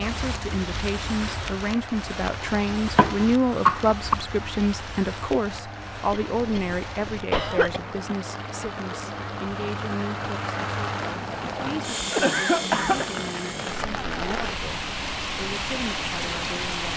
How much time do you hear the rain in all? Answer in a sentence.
You can hear the rain for 17 seconds altogether.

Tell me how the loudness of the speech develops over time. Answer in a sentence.
The volume of the speech goes down.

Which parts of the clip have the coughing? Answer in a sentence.
You can hear the coughing from 3.0 to 4.2 s, from 6.1 to 7.8 s and from 11.6 to 13.1 s.